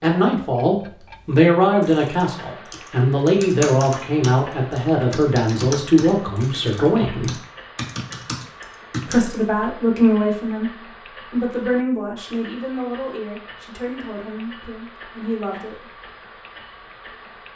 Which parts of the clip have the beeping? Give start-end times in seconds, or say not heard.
not heard.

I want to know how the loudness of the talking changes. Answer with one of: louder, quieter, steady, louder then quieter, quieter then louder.
quieter.